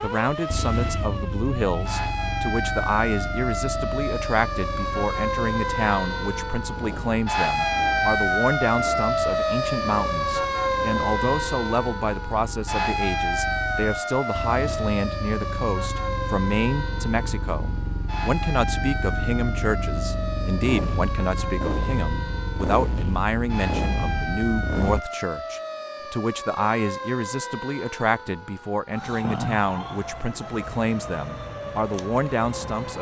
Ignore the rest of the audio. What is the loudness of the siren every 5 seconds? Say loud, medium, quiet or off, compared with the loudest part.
medium, loud, loud, medium, medium, medium, medium.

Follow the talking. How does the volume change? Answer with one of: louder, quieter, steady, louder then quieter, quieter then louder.
steady.